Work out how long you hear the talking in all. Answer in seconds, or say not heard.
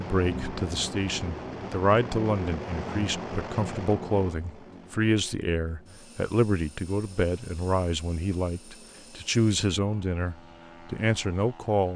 12 s.